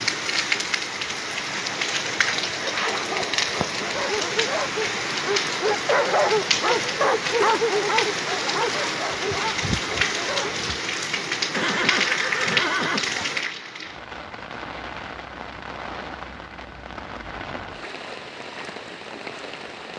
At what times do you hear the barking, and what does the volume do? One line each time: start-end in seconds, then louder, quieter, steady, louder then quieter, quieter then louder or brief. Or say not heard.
2.8-10.6 louder then quieter.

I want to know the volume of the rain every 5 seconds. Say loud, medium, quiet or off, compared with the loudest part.
loud, loud, loud, medium.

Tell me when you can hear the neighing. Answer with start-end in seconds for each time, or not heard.
11.5-13.3.